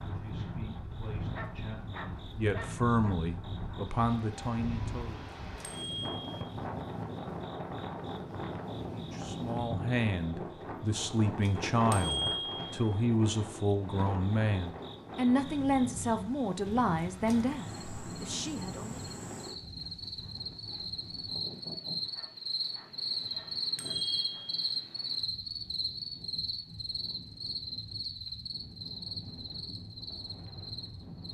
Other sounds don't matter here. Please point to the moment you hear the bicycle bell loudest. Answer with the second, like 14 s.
12 s.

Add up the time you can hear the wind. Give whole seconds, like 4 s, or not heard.
31 s.